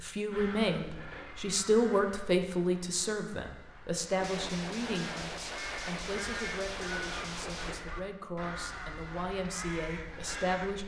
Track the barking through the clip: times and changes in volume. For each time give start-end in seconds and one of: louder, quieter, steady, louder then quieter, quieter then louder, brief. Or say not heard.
not heard.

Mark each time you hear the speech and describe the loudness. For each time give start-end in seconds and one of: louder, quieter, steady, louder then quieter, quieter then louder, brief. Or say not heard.
0.0-10.8 quieter.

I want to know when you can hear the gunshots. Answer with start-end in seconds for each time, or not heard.
4.2-7.8.